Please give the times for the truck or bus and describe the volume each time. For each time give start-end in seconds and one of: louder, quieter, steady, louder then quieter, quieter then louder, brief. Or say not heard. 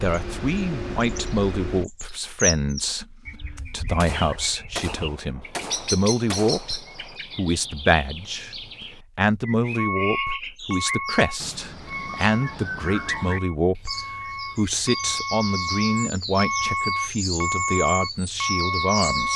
0.0-1.9 brief
9.8-19.3 quieter then louder.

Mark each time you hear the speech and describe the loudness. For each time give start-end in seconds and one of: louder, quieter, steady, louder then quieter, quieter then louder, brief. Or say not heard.
0.0-19.3 steady.